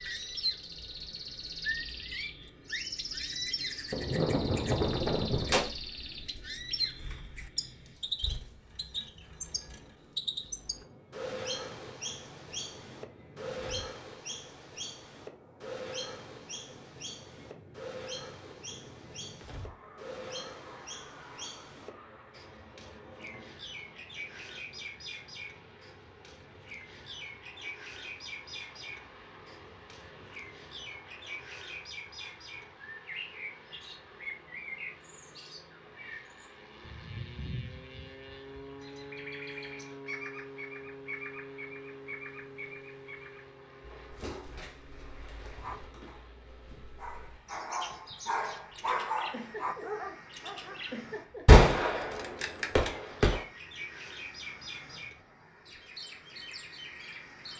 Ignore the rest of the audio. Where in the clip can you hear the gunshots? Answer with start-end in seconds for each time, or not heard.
3.9-5.7, 51.5-53.4.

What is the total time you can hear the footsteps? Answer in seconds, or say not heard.
not heard.